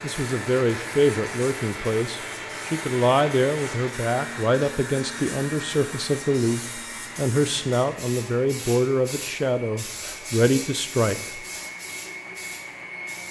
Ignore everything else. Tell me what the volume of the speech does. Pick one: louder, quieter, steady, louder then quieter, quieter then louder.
steady.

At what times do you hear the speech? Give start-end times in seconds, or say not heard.
0.0-11.4.